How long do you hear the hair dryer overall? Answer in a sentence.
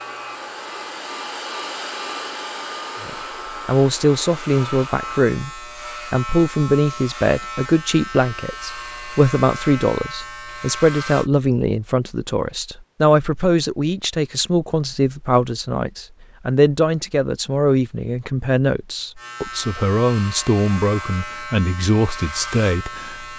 The hair dryer can be heard for 5 seconds in total.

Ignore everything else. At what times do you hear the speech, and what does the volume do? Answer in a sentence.
The speech can be heard from 3.0 to 23.3 s, at a steady volume.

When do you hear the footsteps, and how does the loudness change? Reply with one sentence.
You can't hear the footsteps here.